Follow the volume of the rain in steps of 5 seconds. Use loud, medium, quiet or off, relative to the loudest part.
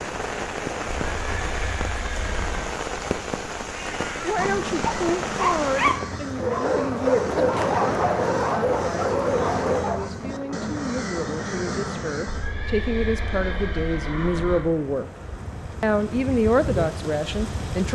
loud, loud, medium, medium.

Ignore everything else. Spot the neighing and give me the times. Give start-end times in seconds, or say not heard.
1.1-2.8, 12.2-14.7.